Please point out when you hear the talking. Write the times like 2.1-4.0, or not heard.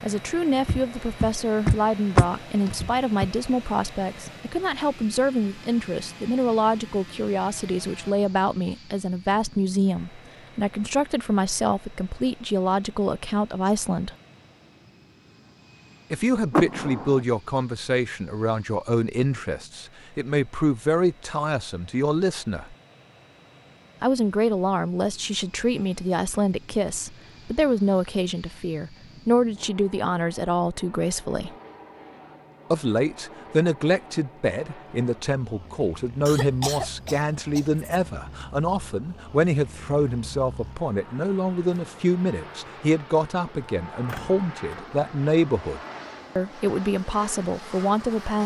0.0-14.2, 16.1-22.8, 24.0-31.6, 32.7-48.4.